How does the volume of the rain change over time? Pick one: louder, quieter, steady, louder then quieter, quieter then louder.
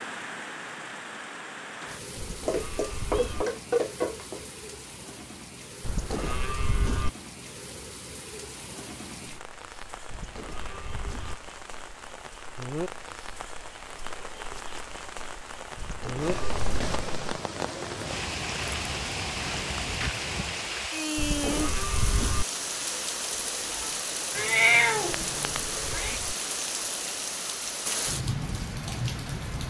louder.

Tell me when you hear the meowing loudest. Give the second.
25 s.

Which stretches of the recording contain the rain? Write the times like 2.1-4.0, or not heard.
0.0-29.6.